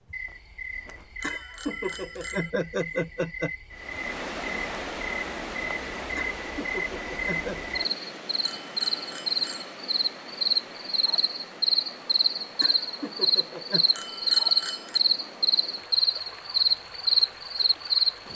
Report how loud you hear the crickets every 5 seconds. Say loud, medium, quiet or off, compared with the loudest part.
quiet, medium, loud, loud.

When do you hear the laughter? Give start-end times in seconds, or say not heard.
1.2-3.5, 6.2-7.6, 12.6-13.8.